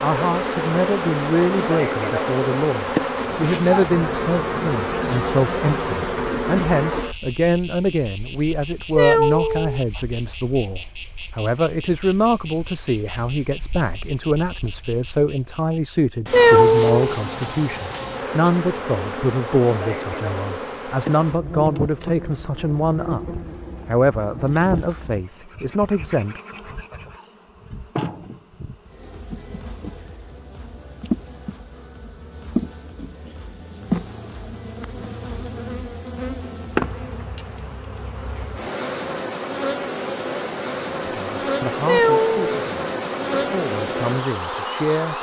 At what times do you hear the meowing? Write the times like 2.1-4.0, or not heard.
8.9-10.0, 16.3-17.1, 41.9-42.5.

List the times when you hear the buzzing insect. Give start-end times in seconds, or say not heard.
0.0-45.1.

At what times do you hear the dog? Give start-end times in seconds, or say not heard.
not heard.